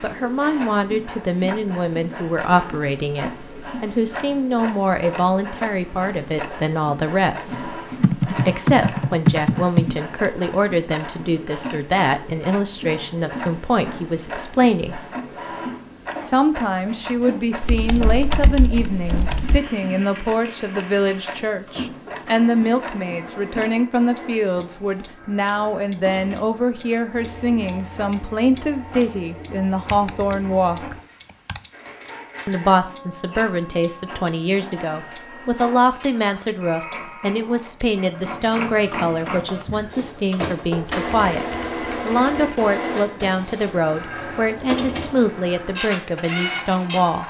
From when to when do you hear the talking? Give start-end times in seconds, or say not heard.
0.0-15.0, 16.2-30.9, 32.5-41.5, 42.0-47.2.